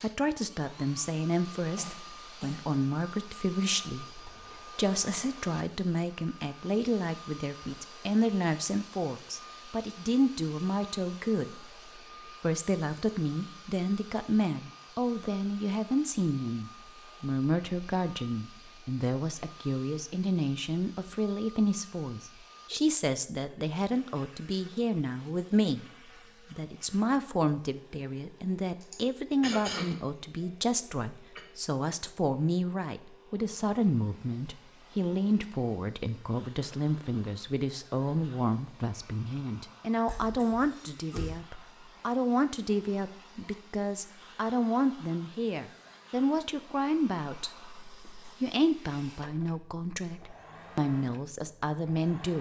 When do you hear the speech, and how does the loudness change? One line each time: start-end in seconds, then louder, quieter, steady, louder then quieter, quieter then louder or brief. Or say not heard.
0.0-52.3 steady.